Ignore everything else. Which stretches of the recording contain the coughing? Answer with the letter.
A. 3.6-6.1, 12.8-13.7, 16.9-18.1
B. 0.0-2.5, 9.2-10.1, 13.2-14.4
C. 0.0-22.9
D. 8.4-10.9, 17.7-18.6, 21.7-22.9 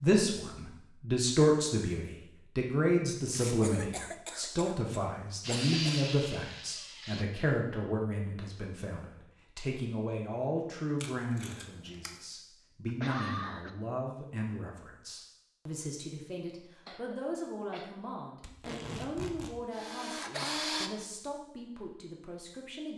A.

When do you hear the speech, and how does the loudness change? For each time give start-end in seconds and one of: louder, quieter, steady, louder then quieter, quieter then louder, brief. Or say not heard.
0.0-22.9 quieter.